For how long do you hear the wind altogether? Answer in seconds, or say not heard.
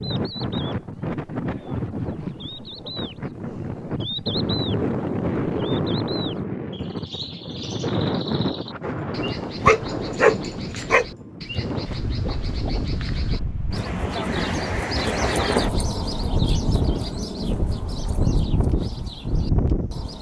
20 s.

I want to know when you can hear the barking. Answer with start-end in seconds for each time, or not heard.
9.6-11.1.